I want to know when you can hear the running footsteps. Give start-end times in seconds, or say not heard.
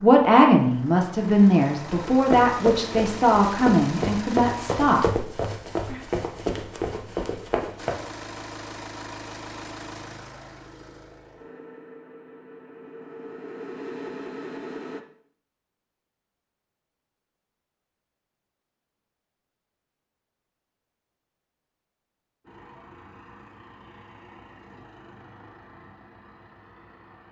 2.1-8.0.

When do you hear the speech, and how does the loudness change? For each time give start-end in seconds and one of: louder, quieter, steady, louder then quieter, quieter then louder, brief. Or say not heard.
0.0-6.0 quieter.